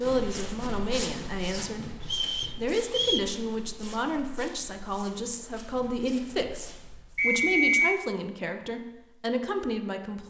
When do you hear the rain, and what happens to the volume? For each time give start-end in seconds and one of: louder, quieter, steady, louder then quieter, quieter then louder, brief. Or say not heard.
not heard.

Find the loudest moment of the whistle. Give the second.
8 s.